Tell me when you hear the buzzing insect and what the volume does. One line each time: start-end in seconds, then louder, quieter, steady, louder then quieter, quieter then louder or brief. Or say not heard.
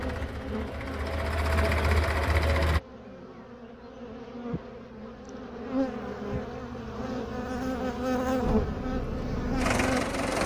0.0-10.4 quieter then louder.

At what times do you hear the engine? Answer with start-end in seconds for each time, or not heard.
0.0-2.8, 8.4-10.4.